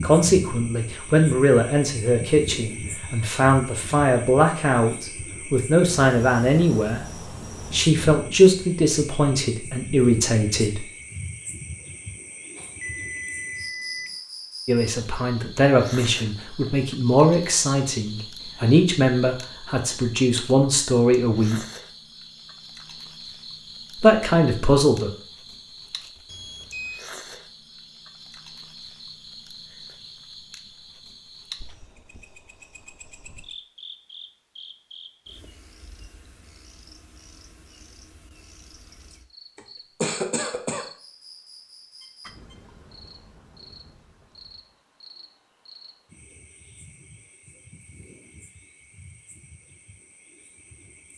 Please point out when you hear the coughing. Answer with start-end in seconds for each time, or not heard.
39.5-40.9.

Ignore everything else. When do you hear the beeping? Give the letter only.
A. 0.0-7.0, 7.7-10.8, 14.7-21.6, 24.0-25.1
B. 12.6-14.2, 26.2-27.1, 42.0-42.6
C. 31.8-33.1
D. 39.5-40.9
B.